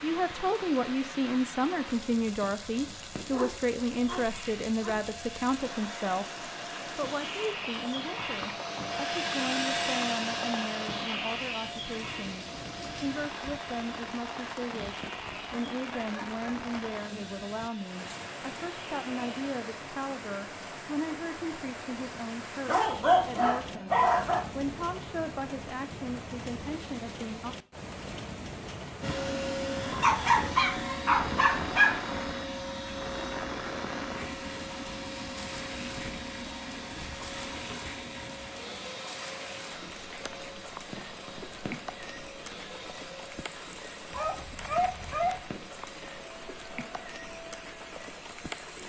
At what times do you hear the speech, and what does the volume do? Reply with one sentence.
The speech can be heard from 0.0 to 27.6 s, getting quieter.